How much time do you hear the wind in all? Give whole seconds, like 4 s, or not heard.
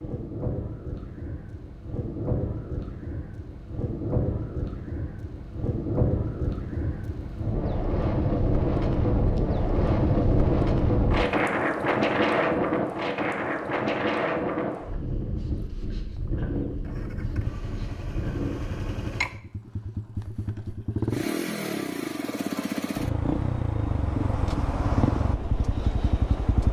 19 s.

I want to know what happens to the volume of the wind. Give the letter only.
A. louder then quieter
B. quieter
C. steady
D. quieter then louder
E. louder
A.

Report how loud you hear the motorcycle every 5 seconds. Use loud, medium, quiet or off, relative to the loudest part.
off, off, off, medium, loud, loud.